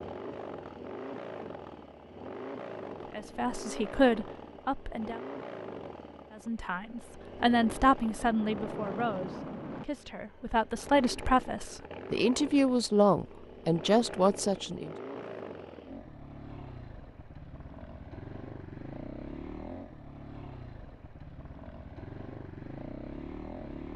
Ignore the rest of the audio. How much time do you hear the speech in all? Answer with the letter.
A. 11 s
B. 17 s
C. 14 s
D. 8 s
A.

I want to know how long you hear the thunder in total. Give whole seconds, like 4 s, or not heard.
2 s.